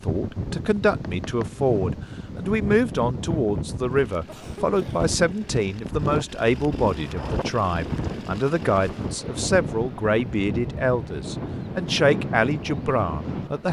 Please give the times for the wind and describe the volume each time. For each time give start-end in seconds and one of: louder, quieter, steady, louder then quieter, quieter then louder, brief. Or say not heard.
0.0-13.6 steady.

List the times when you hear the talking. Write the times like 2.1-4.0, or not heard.
0.0-13.6.